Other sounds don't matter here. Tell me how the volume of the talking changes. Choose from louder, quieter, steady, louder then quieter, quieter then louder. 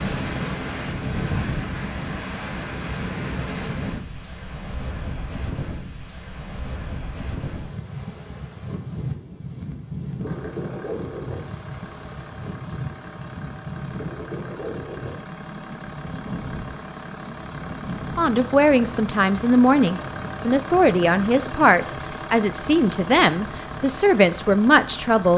steady.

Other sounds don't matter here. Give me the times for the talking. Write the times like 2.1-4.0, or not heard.
18.1-25.3.